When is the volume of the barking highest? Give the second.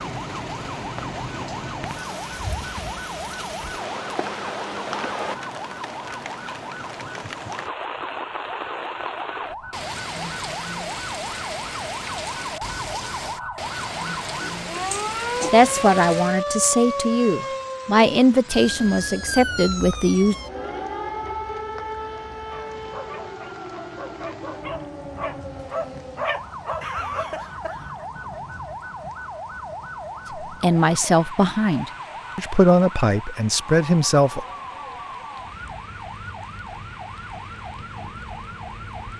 26 s.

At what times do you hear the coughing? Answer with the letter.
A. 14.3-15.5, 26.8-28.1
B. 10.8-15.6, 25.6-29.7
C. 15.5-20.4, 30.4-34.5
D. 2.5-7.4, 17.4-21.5
A.